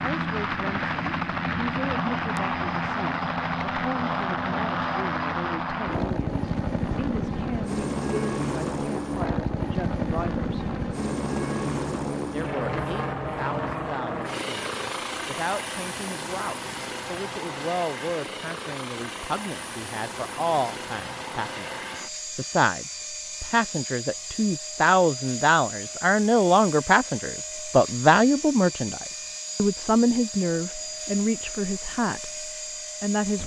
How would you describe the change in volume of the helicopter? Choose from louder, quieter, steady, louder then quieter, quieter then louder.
quieter.